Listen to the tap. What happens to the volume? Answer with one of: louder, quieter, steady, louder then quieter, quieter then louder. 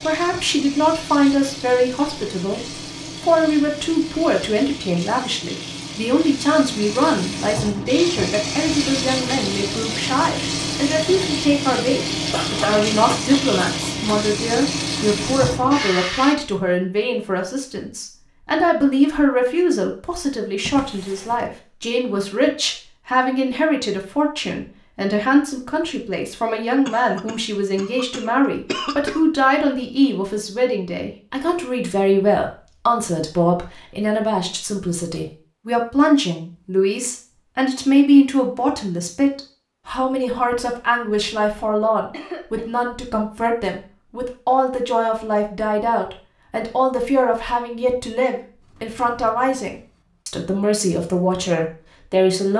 louder.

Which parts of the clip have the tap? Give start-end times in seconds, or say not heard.
0.0-16.4.